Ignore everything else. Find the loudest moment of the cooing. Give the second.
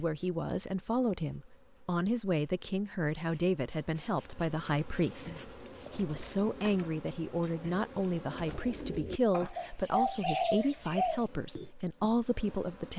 10 s.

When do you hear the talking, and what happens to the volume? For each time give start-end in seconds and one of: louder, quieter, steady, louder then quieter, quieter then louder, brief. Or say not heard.
0.0-12.9 steady.